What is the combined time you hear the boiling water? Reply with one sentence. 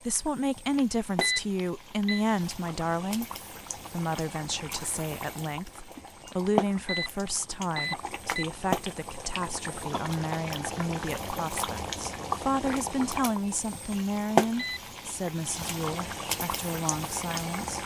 You can hear the boiling water for 18 seconds altogether.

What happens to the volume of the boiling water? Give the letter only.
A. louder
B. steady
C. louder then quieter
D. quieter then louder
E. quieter
A.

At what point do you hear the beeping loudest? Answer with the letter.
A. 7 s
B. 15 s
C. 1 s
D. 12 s
C.